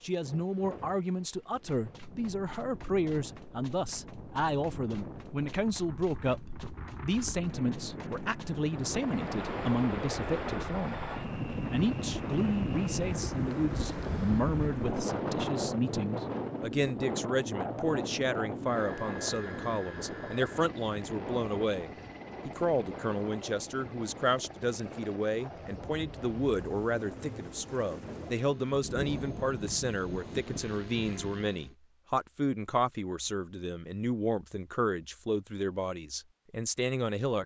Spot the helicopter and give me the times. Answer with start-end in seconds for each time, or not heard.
8.6-31.8.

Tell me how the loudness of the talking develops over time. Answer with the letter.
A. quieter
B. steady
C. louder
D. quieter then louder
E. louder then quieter
B.